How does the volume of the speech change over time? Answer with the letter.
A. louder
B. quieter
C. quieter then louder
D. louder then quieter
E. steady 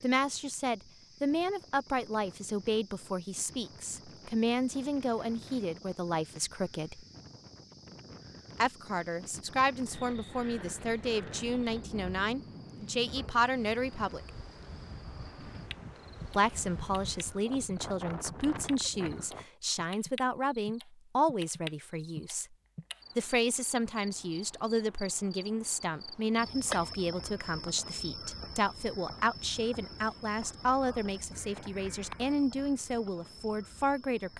E.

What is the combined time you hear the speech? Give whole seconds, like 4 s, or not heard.
30 s.